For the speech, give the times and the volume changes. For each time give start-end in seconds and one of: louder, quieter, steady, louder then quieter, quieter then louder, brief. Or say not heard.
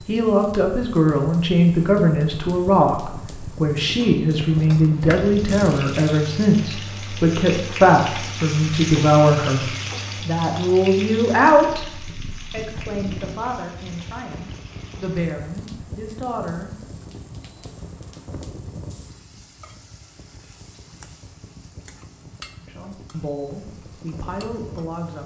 0.1-17.0 quieter
22.6-25.2 brief.